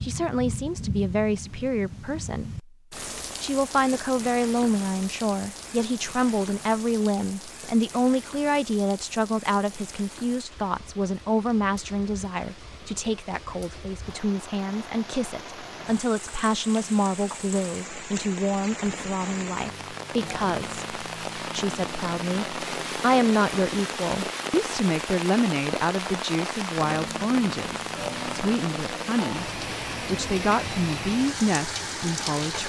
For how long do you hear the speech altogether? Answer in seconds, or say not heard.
32 s.